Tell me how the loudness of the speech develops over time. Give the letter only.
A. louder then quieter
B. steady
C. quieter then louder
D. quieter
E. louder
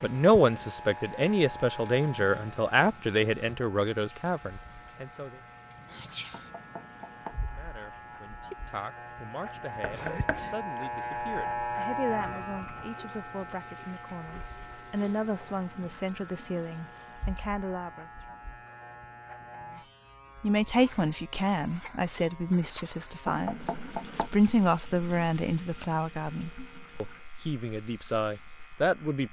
C.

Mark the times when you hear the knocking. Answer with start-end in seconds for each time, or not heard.
6.3-7.4, 9.8-10.4, 23.2-24.3.